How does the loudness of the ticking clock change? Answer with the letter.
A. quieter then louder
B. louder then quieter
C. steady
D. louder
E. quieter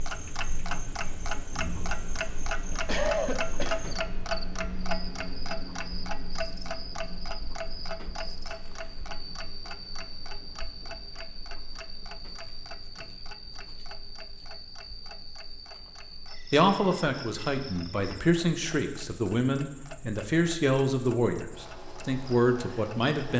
E.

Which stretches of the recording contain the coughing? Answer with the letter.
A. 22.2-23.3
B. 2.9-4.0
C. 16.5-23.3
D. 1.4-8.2
B.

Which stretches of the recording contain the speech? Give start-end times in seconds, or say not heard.
16.5-23.3.